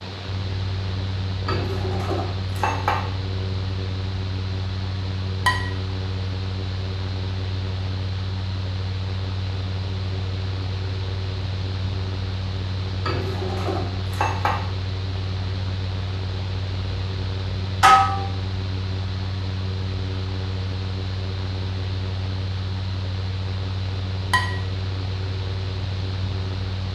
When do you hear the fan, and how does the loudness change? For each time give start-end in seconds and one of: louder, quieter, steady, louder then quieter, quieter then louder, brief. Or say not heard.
0.0-26.9 steady.